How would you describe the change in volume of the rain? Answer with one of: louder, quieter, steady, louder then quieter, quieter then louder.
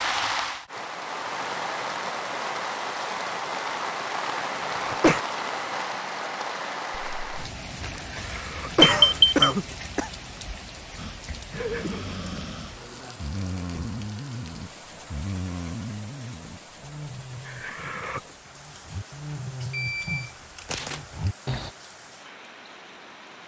quieter.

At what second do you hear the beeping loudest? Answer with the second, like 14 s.
9 s.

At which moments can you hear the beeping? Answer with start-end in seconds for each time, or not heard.
8.8-9.4, 19.7-21.0.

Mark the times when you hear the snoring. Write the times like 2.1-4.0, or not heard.
10.9-21.8.